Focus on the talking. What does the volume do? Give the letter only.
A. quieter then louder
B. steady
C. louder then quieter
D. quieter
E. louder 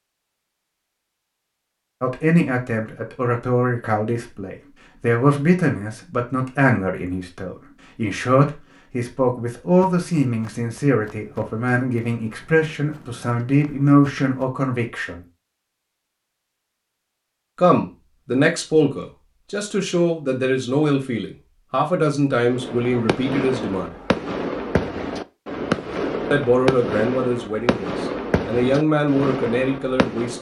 B.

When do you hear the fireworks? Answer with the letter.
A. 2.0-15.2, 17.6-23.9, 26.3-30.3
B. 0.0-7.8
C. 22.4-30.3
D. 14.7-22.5
C.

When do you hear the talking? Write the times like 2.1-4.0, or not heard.
2.0-15.2, 17.6-23.9, 26.3-30.3.